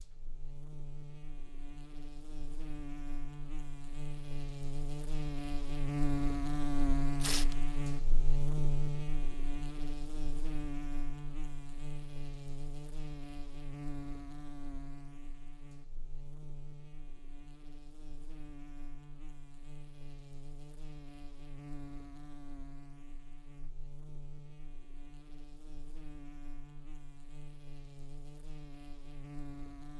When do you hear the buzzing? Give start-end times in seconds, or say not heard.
0.0-29.9.